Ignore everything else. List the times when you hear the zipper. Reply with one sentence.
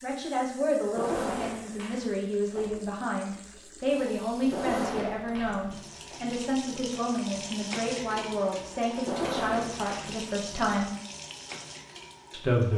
The zipper can be heard from 0.8 to 2.8 s, from 4.4 to 6.2 s and from 8.9 to 10.8 s.